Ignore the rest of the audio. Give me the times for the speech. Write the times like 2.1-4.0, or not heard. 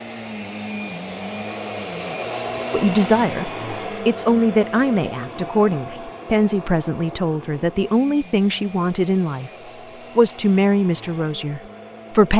2.7-9.5, 10.2-12.3.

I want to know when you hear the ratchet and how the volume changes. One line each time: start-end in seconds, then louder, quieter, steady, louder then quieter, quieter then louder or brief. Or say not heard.
not heard.